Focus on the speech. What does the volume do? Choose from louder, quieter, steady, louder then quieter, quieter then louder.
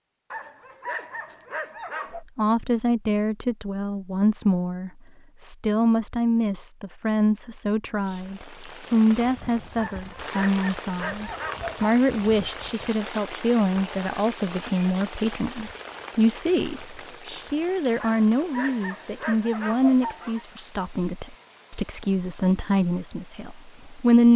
steady.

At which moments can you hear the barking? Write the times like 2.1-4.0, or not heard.
0.3-2.2, 9.8-11.9, 18.0-20.4.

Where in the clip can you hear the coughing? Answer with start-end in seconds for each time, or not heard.
not heard.